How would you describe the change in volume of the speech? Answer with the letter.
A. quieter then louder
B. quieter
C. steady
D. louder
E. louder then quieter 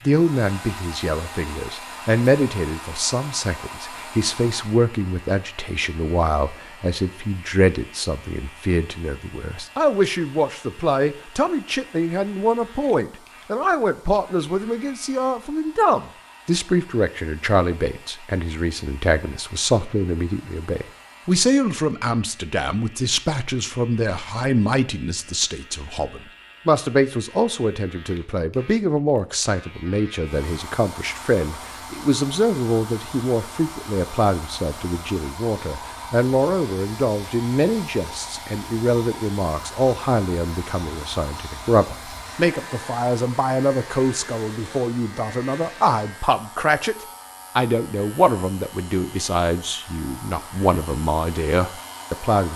C.